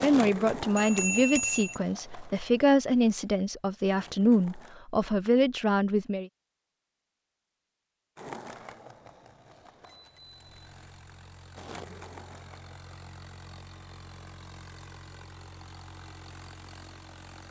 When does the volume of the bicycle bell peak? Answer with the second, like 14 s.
1 s.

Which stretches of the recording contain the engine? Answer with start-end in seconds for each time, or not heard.
10.1-17.4.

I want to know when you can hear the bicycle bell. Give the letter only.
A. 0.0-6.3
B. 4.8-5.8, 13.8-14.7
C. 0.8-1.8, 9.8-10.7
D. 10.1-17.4
C.